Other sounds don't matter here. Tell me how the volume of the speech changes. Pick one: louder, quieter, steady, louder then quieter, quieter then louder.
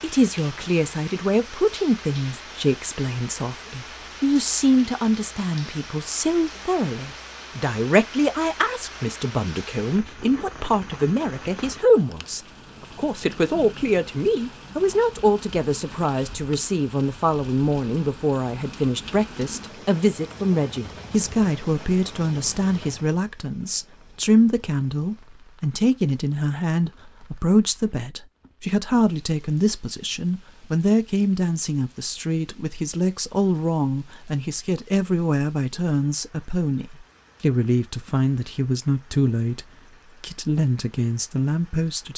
steady.